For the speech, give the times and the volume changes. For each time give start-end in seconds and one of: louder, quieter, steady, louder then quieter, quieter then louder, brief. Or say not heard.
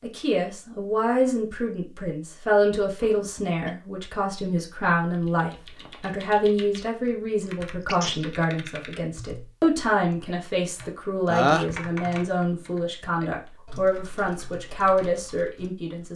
0.0-16.1 steady.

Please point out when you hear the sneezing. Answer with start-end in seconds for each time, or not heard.
3.0-3.8, 7.8-8.3, 11.3-11.8.